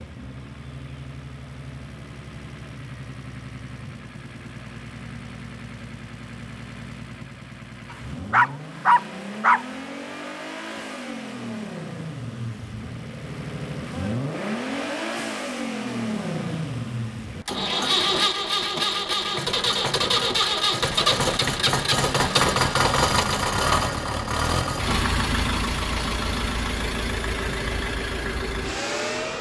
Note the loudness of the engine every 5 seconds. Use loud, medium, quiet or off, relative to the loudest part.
quiet, quiet, medium, loud, loud, medium.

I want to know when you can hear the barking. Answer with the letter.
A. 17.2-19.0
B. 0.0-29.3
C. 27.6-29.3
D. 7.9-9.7
D.